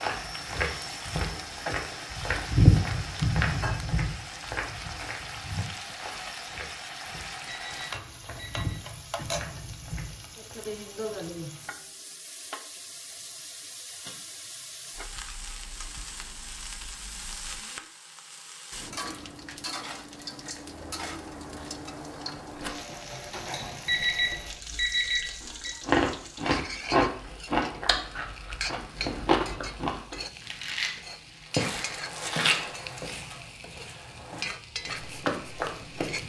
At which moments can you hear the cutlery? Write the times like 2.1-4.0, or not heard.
not heard.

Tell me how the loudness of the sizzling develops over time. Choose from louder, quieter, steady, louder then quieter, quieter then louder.
steady.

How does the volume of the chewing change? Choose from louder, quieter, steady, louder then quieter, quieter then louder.
quieter.